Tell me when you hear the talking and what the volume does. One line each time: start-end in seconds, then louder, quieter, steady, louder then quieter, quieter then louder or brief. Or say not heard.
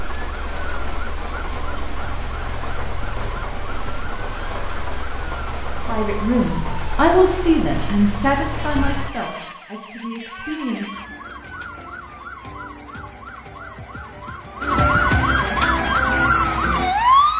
5.8-10.9 quieter.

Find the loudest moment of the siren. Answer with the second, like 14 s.
17 s.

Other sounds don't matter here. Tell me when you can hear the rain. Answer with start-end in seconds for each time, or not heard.
0.0-9.1.